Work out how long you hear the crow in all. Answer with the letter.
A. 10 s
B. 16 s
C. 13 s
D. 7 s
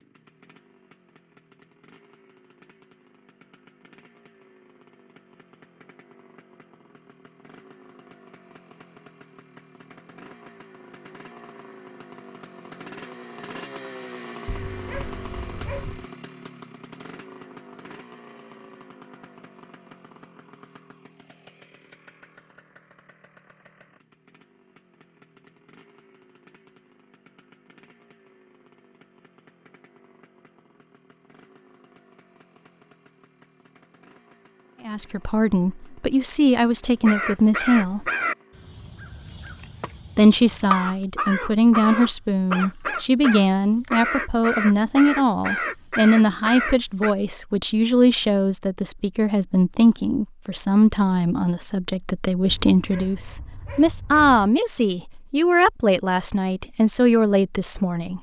A.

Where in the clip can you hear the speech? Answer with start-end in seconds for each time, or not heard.
34.9-38.1, 40.1-58.1.